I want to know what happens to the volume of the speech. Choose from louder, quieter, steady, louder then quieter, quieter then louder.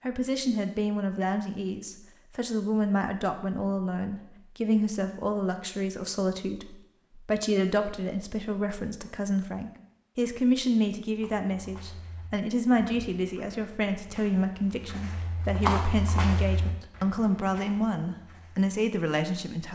steady.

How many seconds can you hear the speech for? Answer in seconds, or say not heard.
20 s.